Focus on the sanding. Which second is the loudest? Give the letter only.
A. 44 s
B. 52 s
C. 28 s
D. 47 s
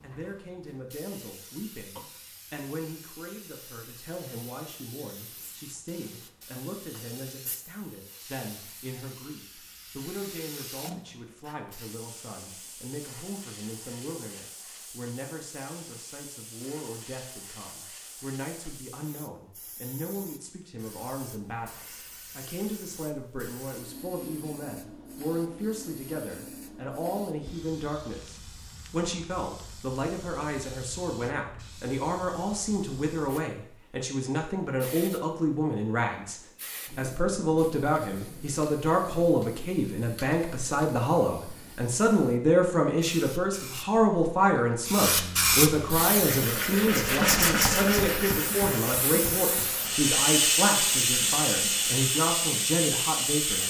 D.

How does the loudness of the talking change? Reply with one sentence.
The loudness of the talking goes up.